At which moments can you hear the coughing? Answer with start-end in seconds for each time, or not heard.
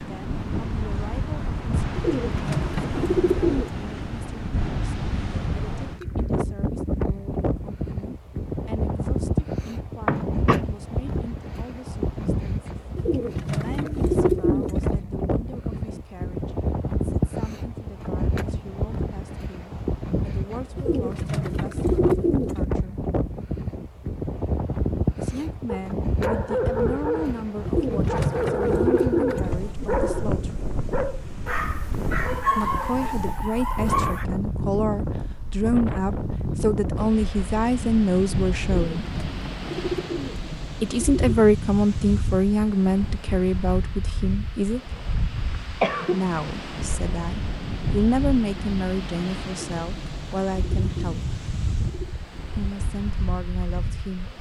10.1-10.7, 45.4-46.2.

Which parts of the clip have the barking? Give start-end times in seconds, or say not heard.
25.6-34.2.